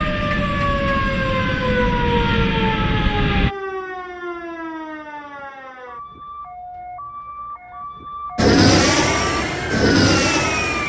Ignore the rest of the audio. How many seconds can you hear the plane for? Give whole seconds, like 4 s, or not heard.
6 s.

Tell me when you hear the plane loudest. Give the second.
9 s.